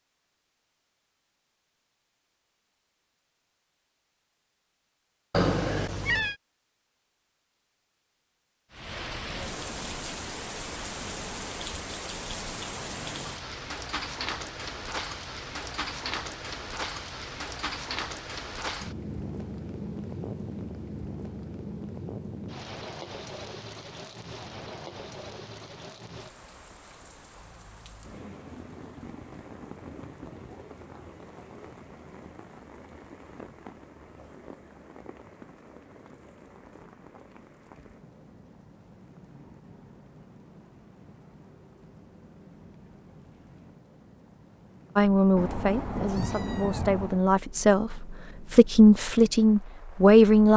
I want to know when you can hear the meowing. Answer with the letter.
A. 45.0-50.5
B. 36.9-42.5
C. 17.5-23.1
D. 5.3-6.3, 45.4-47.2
D.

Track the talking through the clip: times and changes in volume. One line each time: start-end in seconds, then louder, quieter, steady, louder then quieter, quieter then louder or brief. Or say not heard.
45.0-50.5 louder.